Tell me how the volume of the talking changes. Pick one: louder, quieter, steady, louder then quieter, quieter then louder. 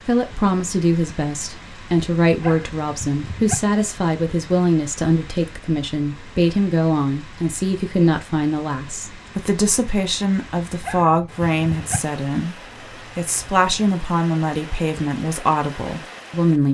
steady.